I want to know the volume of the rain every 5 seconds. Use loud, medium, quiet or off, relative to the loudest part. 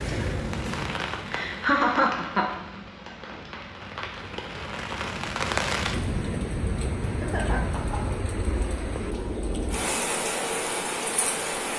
medium, loud, loud.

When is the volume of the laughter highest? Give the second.
2 s.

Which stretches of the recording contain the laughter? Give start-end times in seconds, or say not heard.
1.2-2.5, 7.0-8.2.